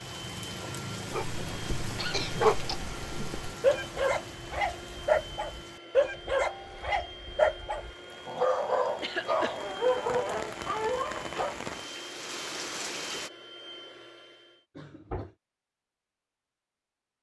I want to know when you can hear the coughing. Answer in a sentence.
You can hear the coughing from 1.9 to 2.8 s, from 9.0 to 9.6 s and from 14.8 to 15.3 s.